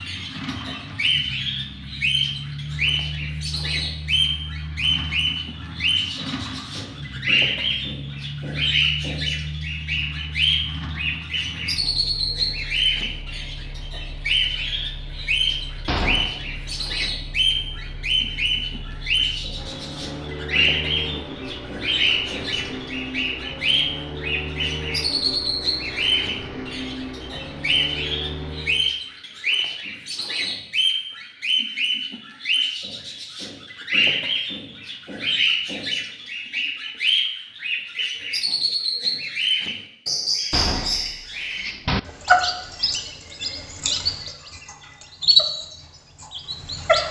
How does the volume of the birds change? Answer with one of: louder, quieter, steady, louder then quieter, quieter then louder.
steady.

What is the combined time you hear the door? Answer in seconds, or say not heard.
3 s.